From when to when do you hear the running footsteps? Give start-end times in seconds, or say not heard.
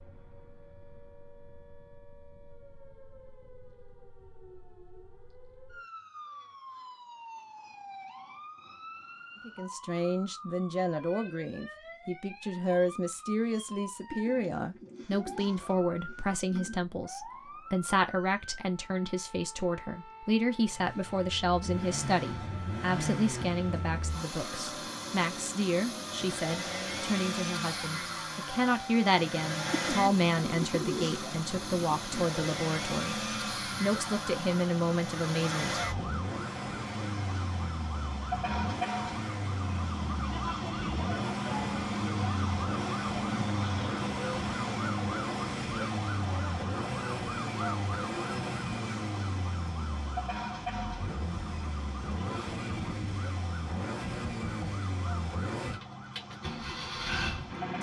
not heard.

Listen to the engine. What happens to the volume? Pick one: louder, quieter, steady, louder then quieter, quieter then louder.
steady.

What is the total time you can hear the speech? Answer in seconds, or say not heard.
26 s.